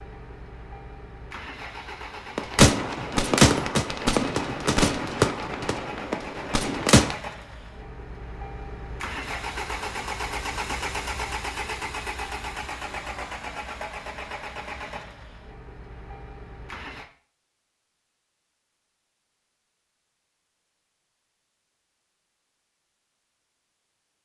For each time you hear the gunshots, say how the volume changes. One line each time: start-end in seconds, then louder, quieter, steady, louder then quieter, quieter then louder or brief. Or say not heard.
2.4-7.2 quieter.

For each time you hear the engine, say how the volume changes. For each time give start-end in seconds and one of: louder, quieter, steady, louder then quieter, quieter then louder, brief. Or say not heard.
0.0-17.1 louder then quieter.